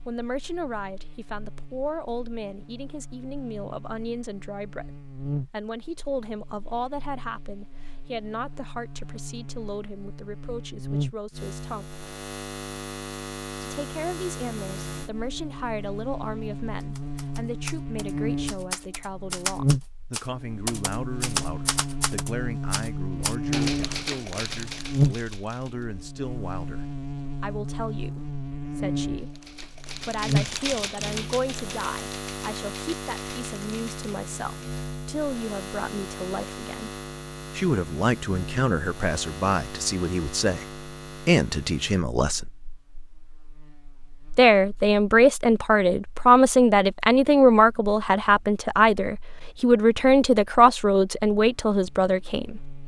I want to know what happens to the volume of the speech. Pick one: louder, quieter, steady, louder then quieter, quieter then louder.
louder.